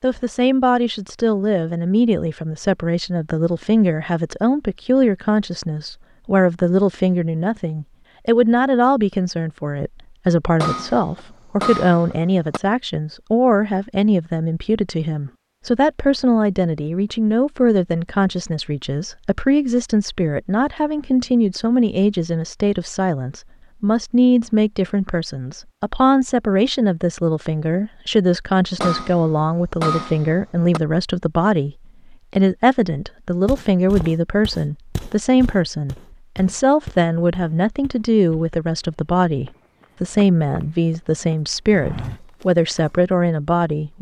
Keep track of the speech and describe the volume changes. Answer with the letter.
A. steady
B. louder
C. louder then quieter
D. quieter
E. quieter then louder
A.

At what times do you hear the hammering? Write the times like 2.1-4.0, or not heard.
10.6-12.6, 28.8-30.8.